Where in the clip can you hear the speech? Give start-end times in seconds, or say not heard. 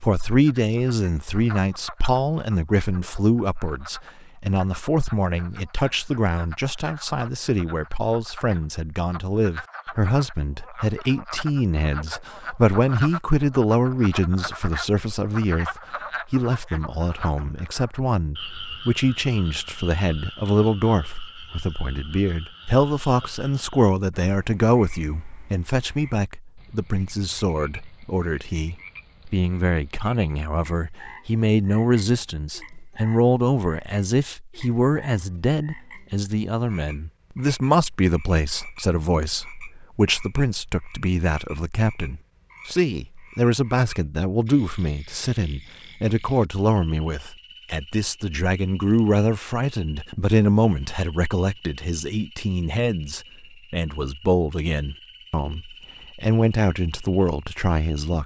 0.0-58.2.